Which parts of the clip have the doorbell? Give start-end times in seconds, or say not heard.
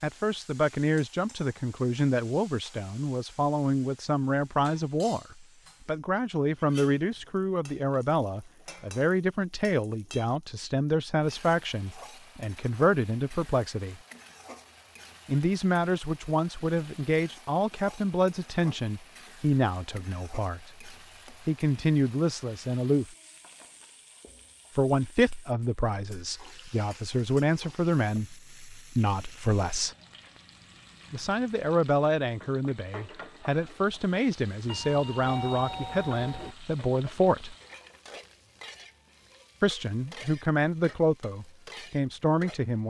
34.6-36.5.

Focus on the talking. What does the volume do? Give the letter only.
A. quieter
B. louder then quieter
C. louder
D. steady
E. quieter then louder
D.